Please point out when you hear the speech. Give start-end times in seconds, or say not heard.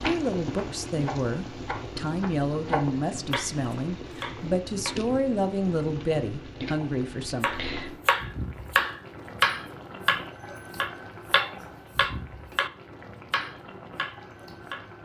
0.0-7.5.